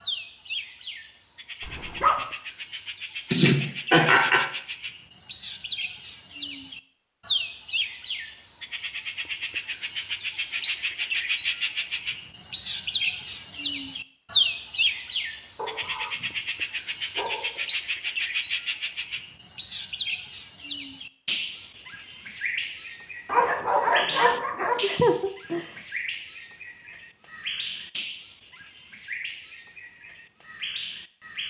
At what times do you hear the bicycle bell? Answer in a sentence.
The bicycle bell can't be heard in this clip.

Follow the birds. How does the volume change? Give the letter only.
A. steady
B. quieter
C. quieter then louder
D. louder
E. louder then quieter
E.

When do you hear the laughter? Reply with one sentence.
You can hear the laughter from 3.3 to 4.5 s and from 24.7 to 25.6 s.